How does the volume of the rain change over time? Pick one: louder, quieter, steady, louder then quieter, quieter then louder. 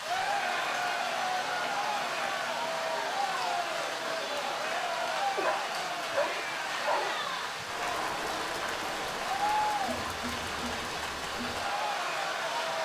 steady.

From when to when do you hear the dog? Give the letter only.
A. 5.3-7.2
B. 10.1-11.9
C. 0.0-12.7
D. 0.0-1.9
A.